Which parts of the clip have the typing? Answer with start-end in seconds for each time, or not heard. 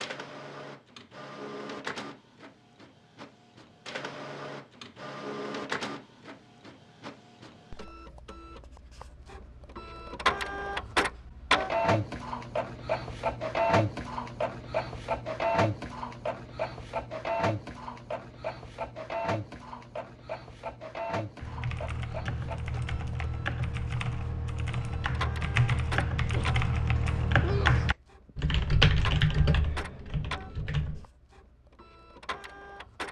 21.4-31.1.